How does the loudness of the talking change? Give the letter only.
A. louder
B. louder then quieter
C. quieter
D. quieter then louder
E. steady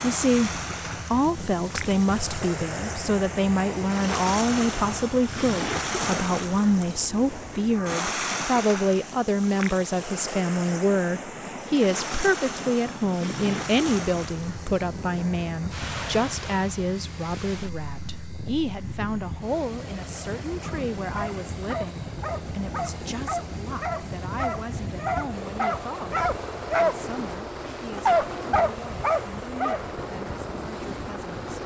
C.